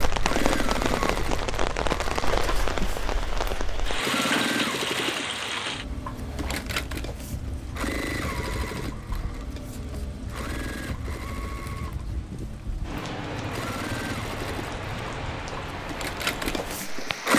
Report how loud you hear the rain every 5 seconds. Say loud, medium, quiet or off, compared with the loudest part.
loud, medium, medium, medium.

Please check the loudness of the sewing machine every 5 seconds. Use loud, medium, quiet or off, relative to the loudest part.
loud, medium, medium, loud.